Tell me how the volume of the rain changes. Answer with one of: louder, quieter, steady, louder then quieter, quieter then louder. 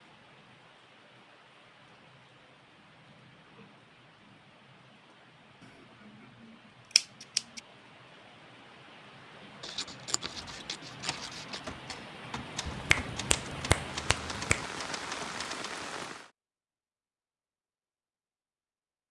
louder.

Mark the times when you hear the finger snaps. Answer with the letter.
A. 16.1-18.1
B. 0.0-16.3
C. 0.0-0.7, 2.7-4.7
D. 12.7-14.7
D.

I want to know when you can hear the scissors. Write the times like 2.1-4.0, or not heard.
6.9-7.6, 9.6-11.6.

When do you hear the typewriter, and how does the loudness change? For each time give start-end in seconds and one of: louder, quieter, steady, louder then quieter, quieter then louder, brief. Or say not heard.
10.3-15.8 steady.